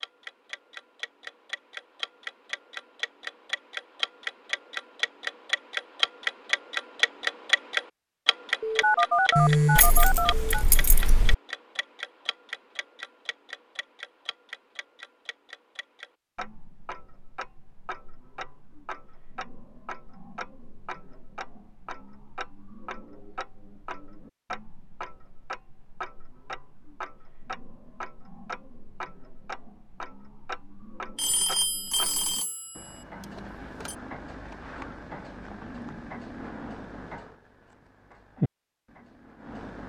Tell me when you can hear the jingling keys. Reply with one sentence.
The jingling keys can be heard from 9.3 to 11.3 s.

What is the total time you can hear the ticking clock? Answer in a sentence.
You can hear the ticking clock for 40 seconds altogether.